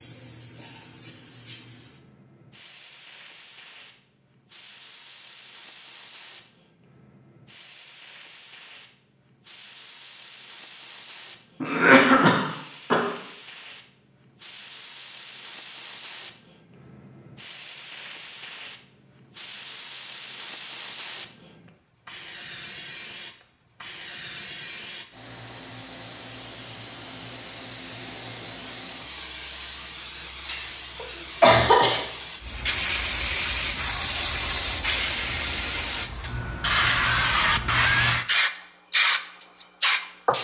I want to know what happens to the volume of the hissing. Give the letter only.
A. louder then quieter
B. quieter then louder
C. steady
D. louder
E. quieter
D.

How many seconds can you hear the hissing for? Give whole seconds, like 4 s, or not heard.
40 s.